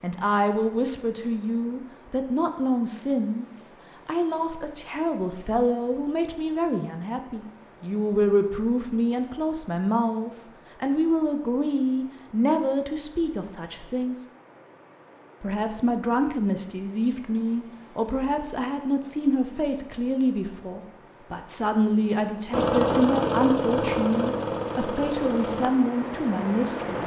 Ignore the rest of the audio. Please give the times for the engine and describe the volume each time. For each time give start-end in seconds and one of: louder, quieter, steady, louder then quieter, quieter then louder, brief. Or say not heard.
22.5-27.0 quieter.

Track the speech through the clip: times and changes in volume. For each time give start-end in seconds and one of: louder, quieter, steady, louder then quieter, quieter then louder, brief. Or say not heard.
0.0-14.2 steady
15.4-27.0 steady.